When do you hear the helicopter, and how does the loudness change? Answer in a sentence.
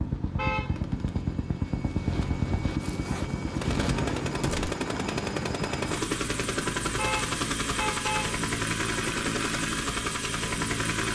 The helicopter can be heard from 0.0 to 11.1 s, at a steady volume.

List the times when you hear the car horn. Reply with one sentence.
The car horn can be heard from 0.3 to 0.8 s and from 7.0 to 8.3 s.